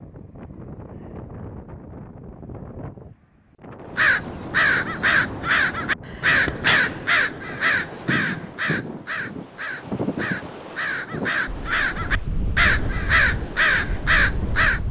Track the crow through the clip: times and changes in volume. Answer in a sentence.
You can hear the crow from 3.9 to 14.8 s, getting quieter then louder.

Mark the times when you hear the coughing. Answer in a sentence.
You can hear the coughing from 5.6 to 7.0 s.